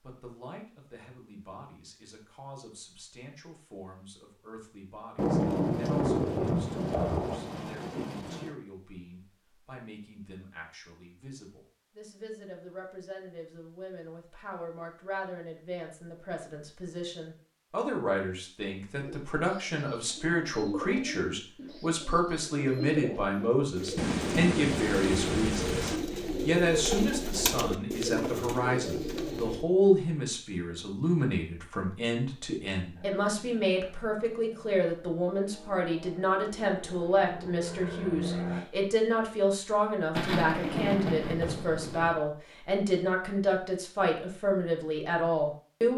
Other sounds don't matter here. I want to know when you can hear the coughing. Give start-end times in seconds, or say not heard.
not heard.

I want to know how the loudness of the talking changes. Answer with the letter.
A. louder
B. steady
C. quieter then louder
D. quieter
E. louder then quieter
A.